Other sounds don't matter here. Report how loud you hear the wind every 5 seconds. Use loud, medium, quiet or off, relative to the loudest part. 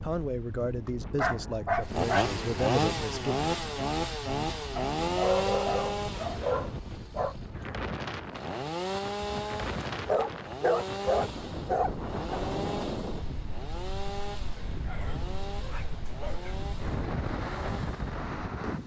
medium, loud, loud, loud.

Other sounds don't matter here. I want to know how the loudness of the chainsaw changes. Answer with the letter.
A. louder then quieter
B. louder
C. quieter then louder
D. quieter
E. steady
D.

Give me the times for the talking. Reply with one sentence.
You can hear the talking from 0.0 to 3.5 s.